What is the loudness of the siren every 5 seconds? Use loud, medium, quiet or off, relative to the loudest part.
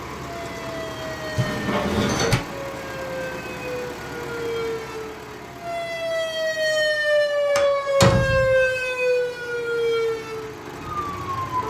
medium, loud, medium.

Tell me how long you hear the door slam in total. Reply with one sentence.
The door slam can be heard for 2 seconds in total.